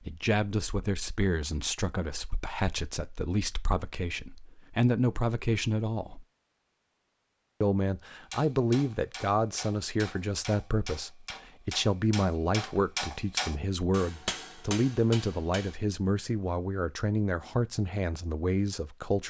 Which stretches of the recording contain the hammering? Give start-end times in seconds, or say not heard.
8.3-15.8.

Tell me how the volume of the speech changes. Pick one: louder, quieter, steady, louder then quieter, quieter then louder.
steady.